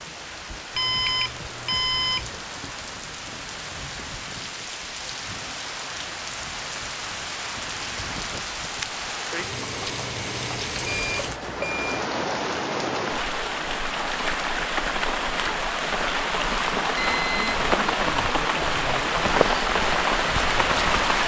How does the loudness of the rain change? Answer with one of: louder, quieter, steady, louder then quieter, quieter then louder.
louder.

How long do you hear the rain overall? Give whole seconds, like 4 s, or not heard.
21 s.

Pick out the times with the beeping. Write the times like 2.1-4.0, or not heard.
0.8-2.3, 10.8-12.1, 16.9-17.6.